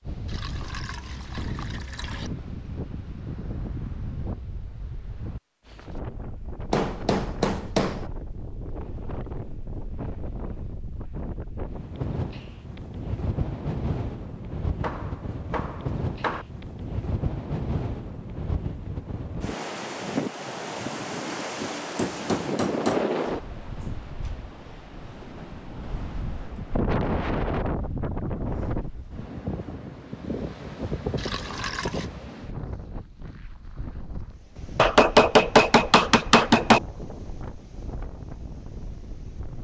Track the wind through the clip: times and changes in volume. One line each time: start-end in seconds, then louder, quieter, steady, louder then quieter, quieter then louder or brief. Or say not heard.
0.0-39.5 louder then quieter.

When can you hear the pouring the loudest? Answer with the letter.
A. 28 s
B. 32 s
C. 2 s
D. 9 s
B.